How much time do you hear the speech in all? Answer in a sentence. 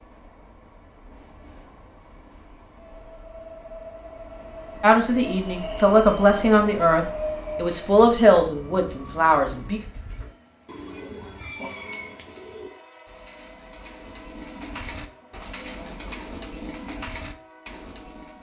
You can hear the speech for 5 seconds altogether.